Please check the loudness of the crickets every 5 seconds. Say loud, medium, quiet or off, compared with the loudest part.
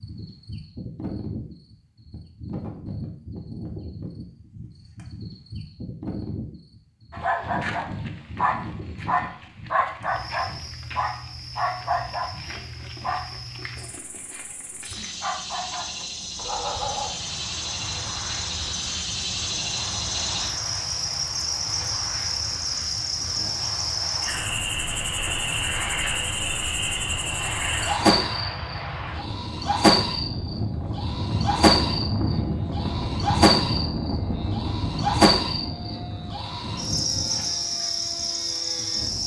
quiet, quiet, quiet, medium, loud, loud, loud, loud.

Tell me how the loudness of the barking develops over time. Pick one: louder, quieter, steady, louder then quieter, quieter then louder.
quieter.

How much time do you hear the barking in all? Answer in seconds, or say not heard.
10 s.